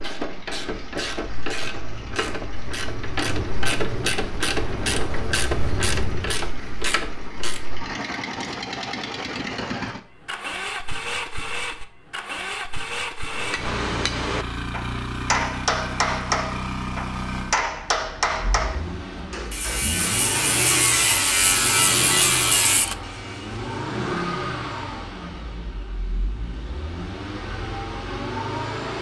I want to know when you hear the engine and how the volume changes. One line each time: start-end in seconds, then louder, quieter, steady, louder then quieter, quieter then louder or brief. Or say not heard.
0.0-28.9 louder.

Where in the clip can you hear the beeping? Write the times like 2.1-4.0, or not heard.
not heard.